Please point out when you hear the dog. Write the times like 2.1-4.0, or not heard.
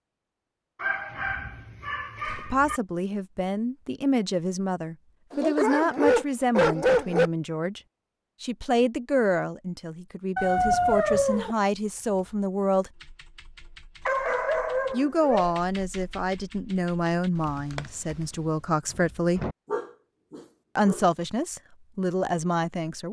0.8-2.8, 5.3-7.3, 10.3-11.6, 14.1-15.6, 19.7-21.0.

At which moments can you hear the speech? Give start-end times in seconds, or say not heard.
2.5-7.8, 8.4-12.9, 14.9-19.4, 20.8-23.0.